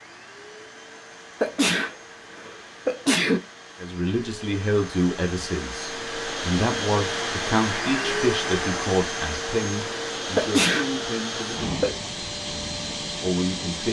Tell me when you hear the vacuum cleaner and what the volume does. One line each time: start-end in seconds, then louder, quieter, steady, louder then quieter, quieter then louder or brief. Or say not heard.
0.0-13.8 louder.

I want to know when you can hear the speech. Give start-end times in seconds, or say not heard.
3.8-13.8.